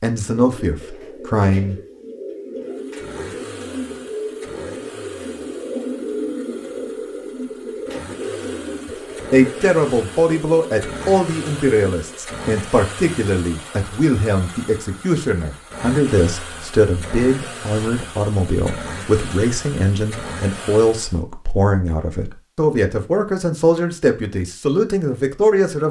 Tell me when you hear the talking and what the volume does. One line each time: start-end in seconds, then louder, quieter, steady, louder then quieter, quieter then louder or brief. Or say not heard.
0.0-1.8 brief
9.3-25.8 steady.